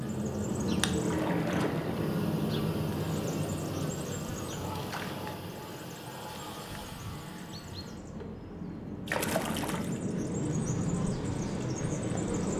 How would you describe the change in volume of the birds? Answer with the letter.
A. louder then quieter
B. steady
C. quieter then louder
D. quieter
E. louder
C.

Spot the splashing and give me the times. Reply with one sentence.
The splashing can be heard from 1.0 to 2.1 s, from 4.8 to 5.2 s and from 9.1 to 9.9 s.